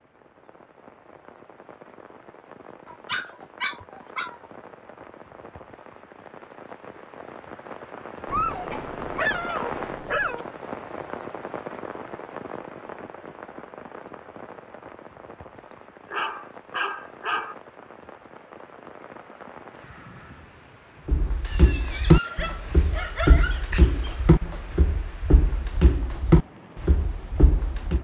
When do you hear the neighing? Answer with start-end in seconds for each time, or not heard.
not heard.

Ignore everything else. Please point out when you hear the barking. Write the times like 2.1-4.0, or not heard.
2.9-4.5, 8.2-10.4, 15.7-17.6, 21.4-24.2.